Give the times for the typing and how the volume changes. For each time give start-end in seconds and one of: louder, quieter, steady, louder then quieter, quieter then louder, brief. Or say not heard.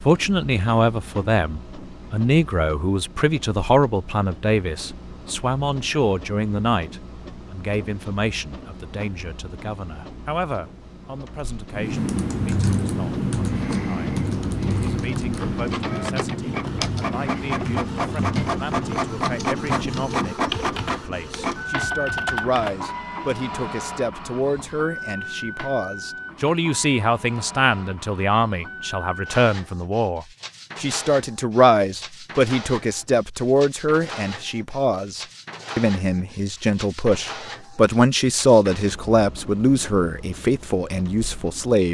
11.7-22.9 quieter.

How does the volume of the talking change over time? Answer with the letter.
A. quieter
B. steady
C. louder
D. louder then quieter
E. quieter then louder
E.